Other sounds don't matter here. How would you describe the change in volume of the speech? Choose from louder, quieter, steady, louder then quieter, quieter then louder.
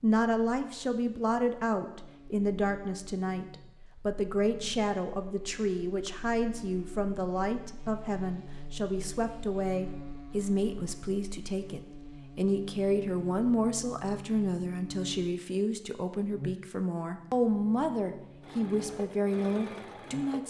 steady.